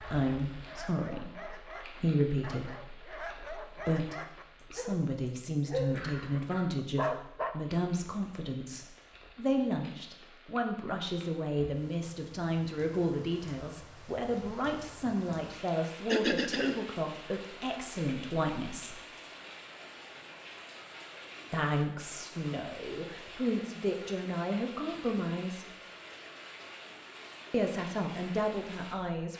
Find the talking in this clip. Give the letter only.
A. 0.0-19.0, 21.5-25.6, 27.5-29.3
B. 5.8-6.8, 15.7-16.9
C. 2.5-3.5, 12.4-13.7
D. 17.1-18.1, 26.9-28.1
A.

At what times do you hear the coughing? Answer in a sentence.
You can hear the coughing from 5.8 to 6.8 s and from 15.7 to 16.9 s.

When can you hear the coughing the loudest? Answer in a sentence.
The volume of the coughing peaks at 16 seconds.